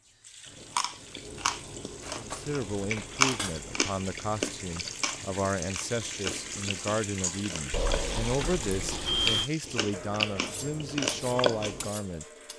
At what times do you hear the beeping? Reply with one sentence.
The beeping can be heard from 7.7 to 9.5 s.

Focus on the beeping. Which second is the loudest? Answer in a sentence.
The loudest moment of the beeping is at 9 seconds.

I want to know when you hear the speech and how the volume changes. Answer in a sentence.
You can hear the speech from 2.1 to 12.2 s, at a steady volume.